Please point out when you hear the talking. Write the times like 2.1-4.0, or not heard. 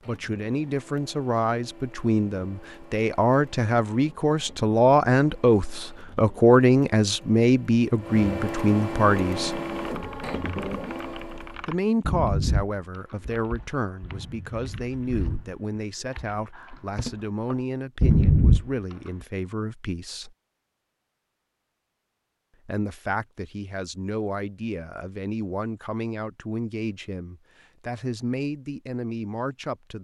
0.1-9.6, 11.7-20.4, 22.6-29.9.